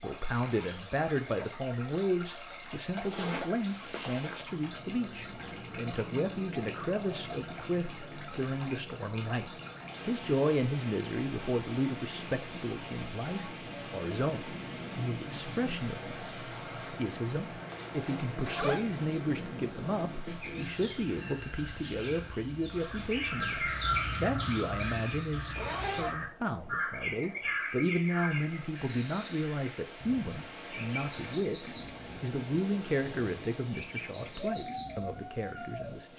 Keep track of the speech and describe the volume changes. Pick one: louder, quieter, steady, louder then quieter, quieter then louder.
steady.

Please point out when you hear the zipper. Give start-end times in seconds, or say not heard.
3.0-4.5, 17.7-18.9, 25.6-26.1.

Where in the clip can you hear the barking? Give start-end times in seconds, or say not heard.
not heard.